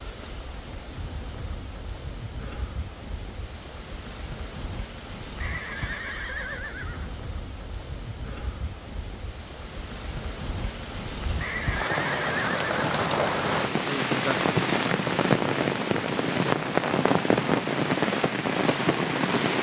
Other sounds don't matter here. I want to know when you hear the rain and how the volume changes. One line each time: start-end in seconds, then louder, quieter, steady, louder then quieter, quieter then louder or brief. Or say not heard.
0.0-19.5 louder.